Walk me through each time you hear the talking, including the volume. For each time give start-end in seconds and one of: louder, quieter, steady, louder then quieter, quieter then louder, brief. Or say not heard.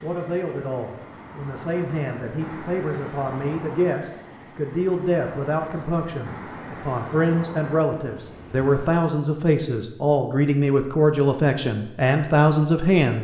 0.0-13.1 louder.